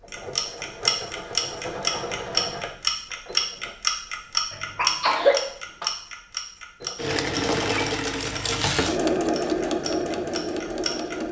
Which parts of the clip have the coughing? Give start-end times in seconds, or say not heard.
4.5-5.8.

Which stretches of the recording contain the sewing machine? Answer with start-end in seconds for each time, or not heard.
0.0-3.8, 6.8-11.2.